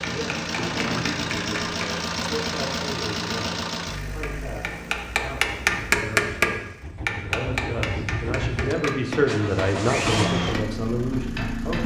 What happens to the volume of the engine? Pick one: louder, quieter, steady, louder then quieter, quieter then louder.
quieter then louder.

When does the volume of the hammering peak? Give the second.
6 s.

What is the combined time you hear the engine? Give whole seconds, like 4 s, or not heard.
12 s.